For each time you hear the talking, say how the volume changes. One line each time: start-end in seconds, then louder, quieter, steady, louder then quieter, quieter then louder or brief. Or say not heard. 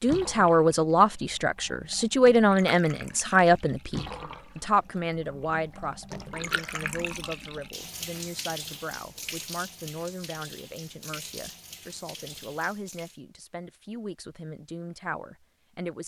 0.0-16.0 quieter.